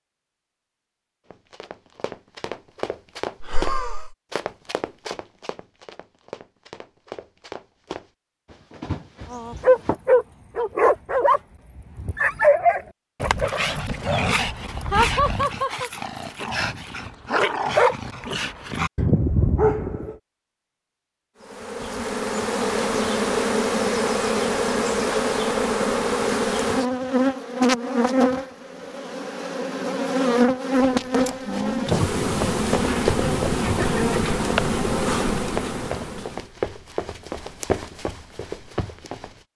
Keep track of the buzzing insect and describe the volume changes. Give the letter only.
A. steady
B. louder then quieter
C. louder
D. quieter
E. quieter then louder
A.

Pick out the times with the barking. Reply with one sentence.
The barking can be heard from 9.3 to 20.1 s.